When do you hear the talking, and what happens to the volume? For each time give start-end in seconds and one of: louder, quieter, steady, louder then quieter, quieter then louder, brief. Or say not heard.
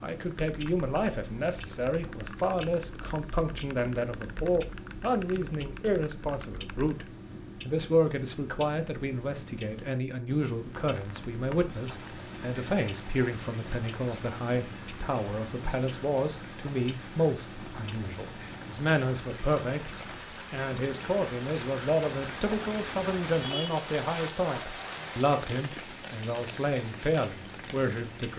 0.0-28.3 steady.